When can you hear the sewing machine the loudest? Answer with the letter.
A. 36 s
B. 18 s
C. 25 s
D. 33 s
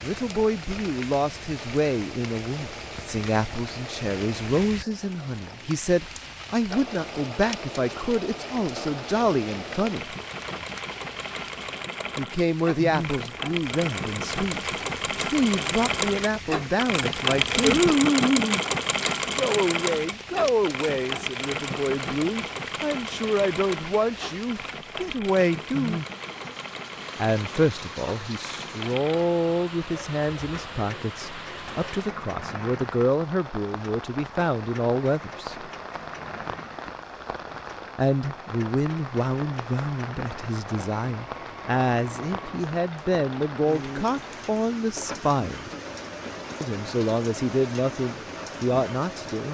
B.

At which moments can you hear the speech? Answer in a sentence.
The speech can be heard from 0.0 to 10.2 s, from 12.2 to 17.8 s, from 19.4 to 26.0 s, from 27.1 to 35.7 s, from 38.0 to 45.7 s and from 46.6 to 49.4 s.